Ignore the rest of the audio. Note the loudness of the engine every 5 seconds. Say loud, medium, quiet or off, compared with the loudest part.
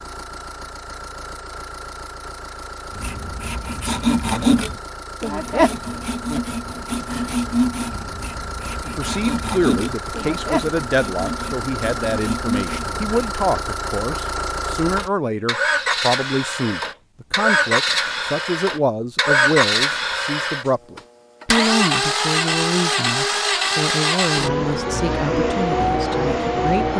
quiet, quiet, medium, loud, loud, loud.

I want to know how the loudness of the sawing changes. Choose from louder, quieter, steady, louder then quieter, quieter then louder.
quieter.